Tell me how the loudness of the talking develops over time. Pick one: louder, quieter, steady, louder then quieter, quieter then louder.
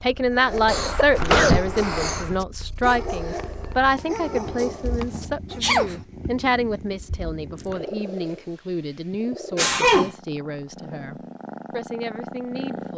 quieter.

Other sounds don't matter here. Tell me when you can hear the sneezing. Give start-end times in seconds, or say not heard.
0.7-2.4, 5.0-6.0, 9.1-10.1.